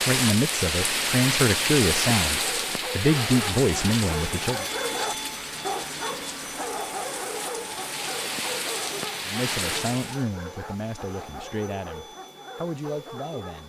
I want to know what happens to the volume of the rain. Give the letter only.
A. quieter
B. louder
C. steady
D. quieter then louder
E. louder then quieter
D.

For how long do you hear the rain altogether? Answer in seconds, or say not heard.
10 s.